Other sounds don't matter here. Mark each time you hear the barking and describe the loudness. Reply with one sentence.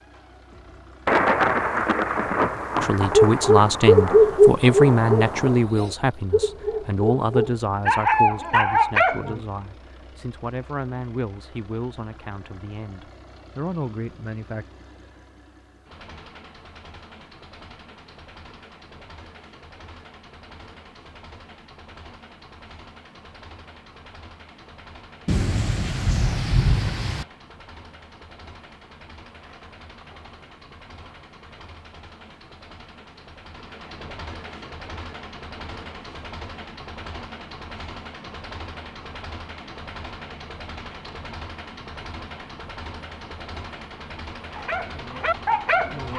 The barking can be heard from 3.1 to 9.4 s, getting quieter then louder; and briefly from 44.5 to 46.1 s.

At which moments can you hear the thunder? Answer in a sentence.
You can hear the thunder from 1.1 to 5.7 s and from 25.2 to 27.2 s.